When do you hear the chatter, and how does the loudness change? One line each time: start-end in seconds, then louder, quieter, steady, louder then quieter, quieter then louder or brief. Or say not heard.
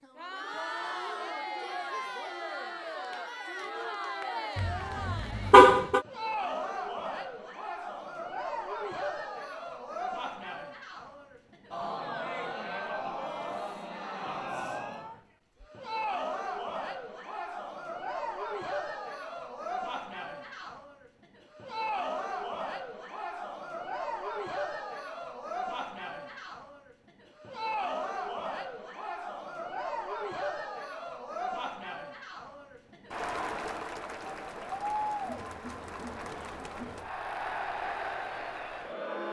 0.0-39.2 steady.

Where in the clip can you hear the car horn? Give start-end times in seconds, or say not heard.
4.5-6.0.